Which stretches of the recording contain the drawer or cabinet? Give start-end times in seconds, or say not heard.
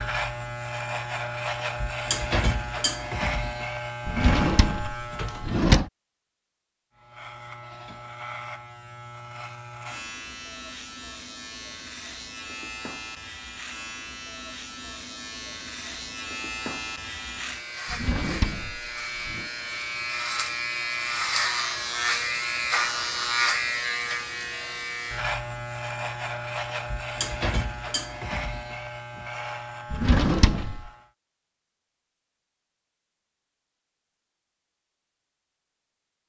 4.0-5.9, 17.9-19.4, 29.9-30.9.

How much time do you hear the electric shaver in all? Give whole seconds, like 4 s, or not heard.
30 s.